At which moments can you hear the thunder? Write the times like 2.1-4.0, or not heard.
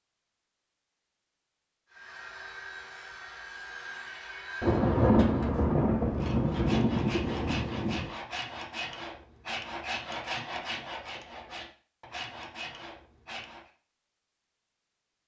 4.6-8.1.